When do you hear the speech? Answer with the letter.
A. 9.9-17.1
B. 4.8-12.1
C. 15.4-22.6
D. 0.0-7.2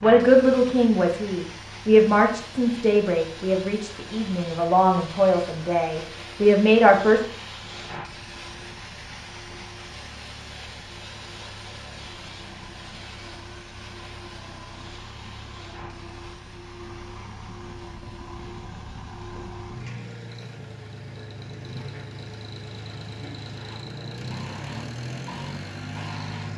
D.